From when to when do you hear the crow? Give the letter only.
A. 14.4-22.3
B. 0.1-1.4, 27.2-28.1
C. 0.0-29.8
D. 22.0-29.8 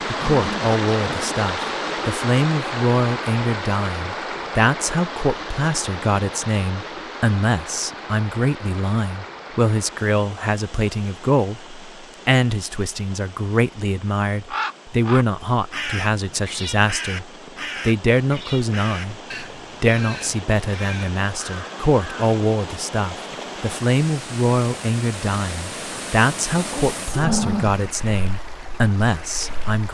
A.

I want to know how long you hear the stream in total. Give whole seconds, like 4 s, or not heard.
30 s.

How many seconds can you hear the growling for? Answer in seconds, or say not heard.
2 s.